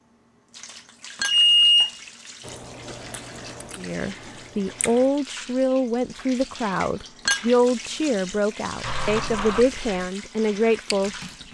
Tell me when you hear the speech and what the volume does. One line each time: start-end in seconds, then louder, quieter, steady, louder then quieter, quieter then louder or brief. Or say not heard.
3.8-11.4 steady.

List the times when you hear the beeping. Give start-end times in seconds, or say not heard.
1.2-1.9, 8.8-9.7.